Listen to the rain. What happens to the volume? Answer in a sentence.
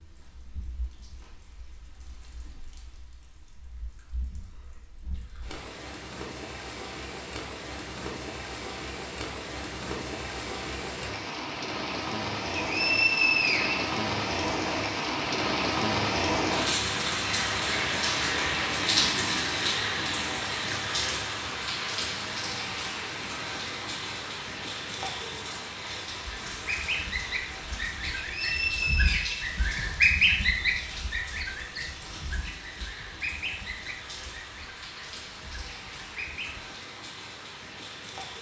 The loudness of the rain goes up, then down.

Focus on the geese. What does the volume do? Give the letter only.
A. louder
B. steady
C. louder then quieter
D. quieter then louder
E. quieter
C.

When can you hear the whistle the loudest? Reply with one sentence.
The volume of the whistle peaks at 13 seconds.